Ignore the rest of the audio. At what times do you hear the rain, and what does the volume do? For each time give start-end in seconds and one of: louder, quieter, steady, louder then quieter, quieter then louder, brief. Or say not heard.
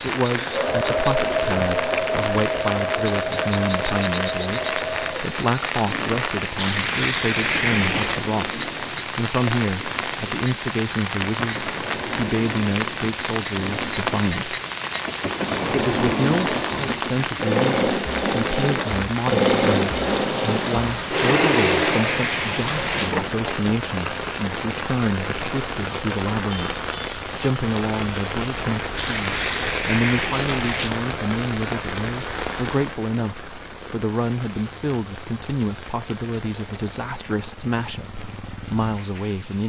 0.0-39.6 quieter.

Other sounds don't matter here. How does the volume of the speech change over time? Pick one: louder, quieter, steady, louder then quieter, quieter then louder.
steady.